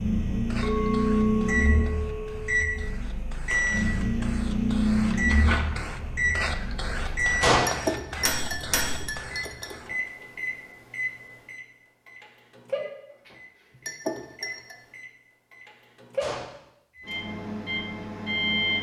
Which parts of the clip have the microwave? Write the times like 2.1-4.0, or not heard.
0.0-18.7.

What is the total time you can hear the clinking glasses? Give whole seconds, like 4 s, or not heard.
5 s.